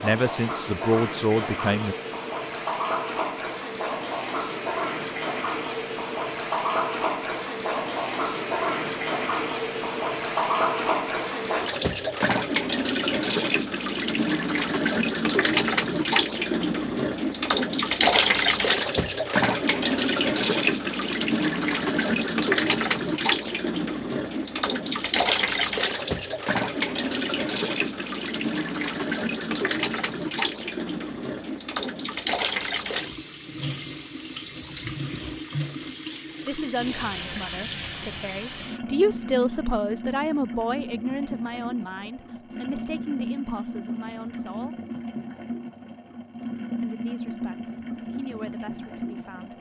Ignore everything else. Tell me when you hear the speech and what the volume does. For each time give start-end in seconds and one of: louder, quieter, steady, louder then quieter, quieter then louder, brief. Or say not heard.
0.0-1.9 brief
36.5-44.8 louder then quieter
46.8-49.5 brief.